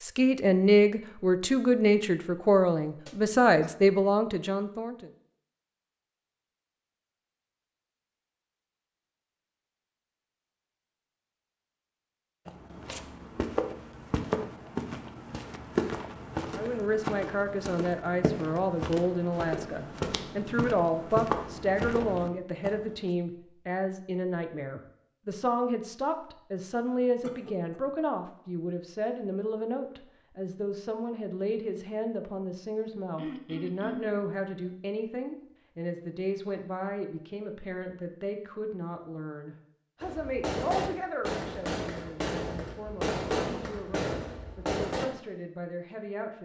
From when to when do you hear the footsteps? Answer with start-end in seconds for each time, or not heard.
12.4-22.9.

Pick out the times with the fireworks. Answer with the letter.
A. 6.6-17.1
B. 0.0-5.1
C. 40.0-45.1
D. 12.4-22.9
C.